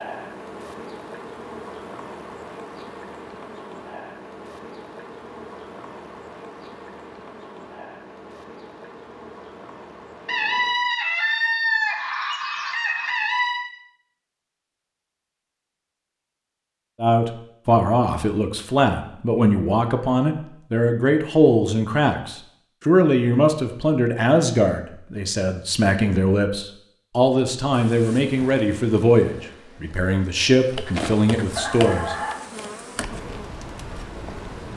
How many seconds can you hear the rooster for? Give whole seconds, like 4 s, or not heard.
4 s.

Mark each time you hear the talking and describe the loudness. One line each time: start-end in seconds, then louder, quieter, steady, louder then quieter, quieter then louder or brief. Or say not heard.
17.0-32.1 steady.